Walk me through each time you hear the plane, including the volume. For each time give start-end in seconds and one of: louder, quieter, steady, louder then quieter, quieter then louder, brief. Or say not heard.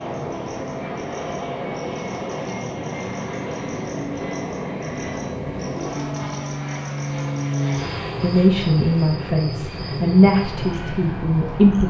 0.0-11.8 steady.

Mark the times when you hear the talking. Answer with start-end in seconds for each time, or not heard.
8.2-11.8.